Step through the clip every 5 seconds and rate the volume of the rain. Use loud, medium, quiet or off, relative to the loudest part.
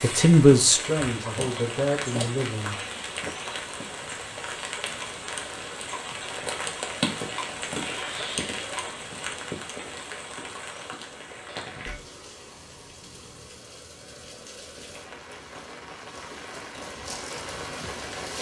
loud, loud, medium, medium.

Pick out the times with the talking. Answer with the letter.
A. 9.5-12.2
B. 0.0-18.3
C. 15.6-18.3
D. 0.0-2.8
D.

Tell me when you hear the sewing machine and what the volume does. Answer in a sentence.
You can't hear the sewing machine here.